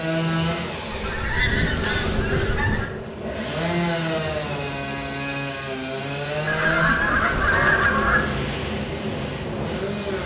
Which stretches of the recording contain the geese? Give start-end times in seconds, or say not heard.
0.9-2.9, 6.5-8.2.